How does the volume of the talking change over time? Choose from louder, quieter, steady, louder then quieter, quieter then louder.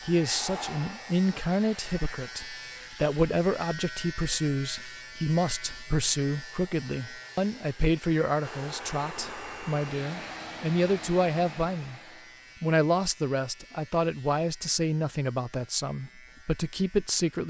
steady.